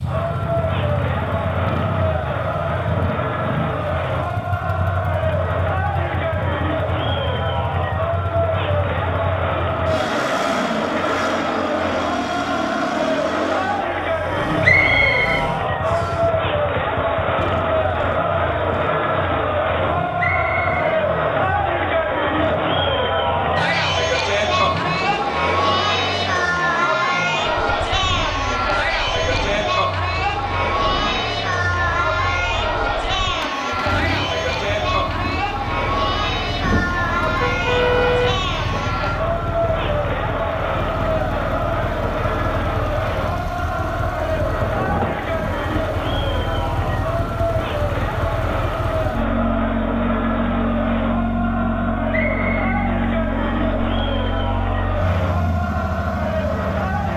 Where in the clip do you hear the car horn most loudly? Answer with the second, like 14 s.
38 s.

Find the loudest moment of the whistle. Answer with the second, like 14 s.
15 s.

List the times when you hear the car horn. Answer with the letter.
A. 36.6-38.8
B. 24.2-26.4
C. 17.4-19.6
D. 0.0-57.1
A.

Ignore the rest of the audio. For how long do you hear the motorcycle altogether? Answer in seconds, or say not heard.
57 s.